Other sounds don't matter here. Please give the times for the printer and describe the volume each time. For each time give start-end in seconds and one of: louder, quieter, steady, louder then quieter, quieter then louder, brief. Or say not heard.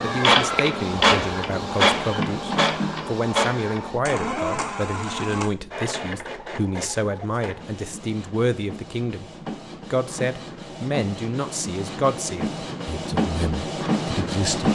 0.0-14.7 quieter then louder.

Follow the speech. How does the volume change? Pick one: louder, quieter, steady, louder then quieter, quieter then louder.
steady.